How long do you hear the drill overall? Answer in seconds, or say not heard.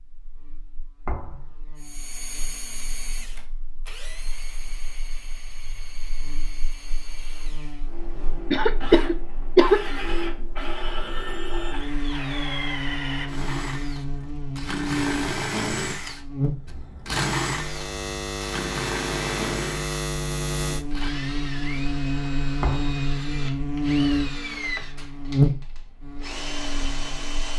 26 s.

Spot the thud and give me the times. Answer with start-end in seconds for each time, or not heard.
1.1-1.6, 22.6-23.1.